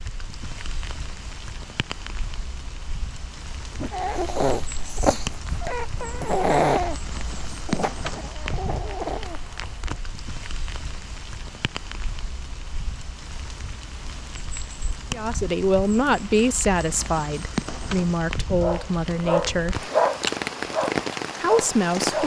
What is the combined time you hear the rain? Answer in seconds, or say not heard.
22 s.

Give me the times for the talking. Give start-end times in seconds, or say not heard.
15.1-19.9, 21.4-22.2.